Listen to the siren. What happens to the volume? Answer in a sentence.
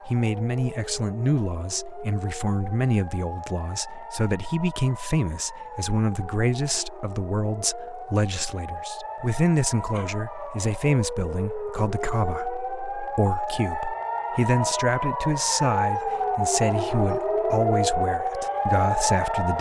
The loudness of the siren goes up.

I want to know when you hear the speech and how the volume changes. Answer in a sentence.
You can hear the speech from 0.1 to 19.5 s, at a steady volume.